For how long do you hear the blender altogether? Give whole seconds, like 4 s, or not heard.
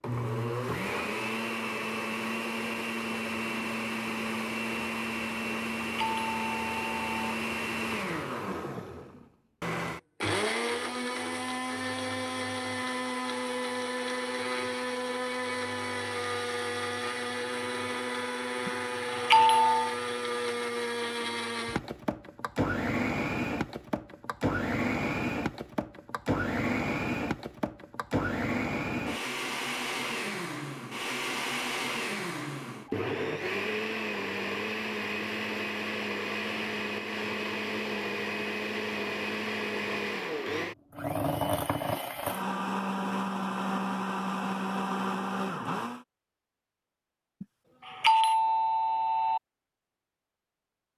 46 s.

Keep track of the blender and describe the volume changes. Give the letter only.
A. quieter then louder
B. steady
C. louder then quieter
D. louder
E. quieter
B.